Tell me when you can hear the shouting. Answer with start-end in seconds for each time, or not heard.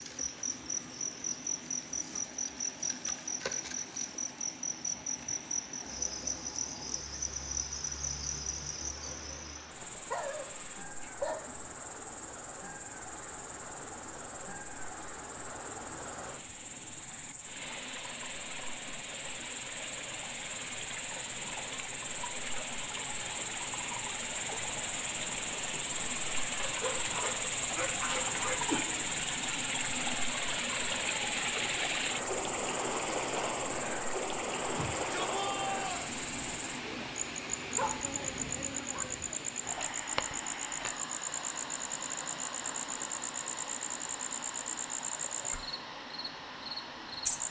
34.7-36.1.